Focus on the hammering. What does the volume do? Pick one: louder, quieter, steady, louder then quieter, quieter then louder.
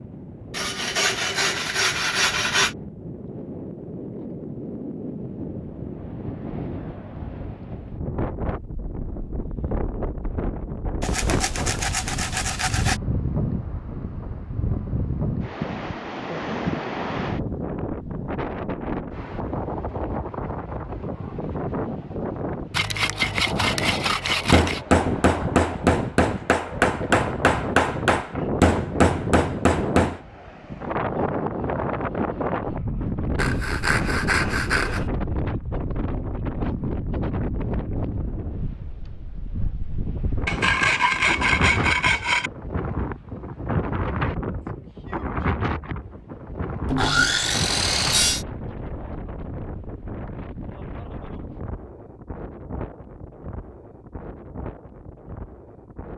steady.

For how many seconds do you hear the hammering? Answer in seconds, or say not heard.
6 s.